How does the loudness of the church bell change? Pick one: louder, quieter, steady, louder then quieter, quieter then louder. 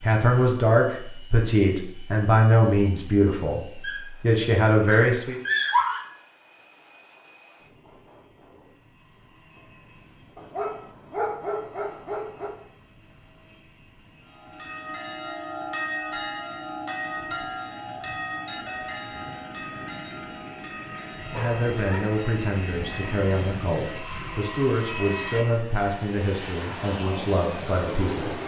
quieter.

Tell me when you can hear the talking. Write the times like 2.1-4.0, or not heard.
0.0-5.4, 21.3-28.4.